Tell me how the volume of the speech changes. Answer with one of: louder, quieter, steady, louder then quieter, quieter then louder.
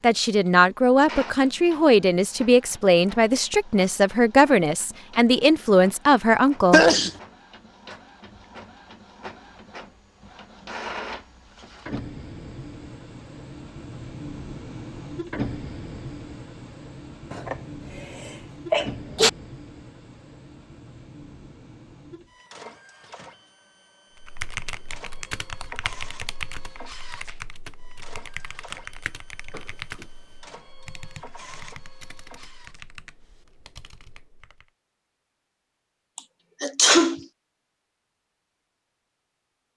steady.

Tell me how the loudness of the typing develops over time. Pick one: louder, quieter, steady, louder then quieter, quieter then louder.
quieter.